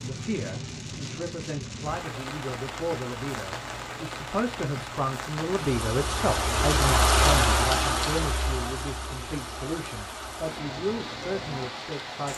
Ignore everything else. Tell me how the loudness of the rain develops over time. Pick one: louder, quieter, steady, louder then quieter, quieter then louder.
louder then quieter.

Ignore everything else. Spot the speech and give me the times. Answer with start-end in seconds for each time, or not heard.
0.0-12.3.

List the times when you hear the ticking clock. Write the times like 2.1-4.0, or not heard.
not heard.